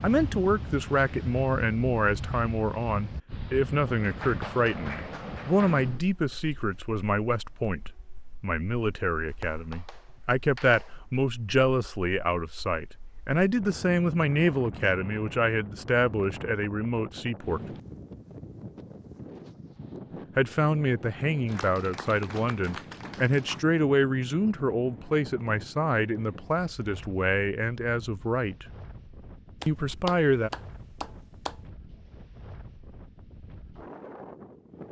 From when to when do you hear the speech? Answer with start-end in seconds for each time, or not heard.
0.0-17.6, 20.4-28.6, 29.6-30.5.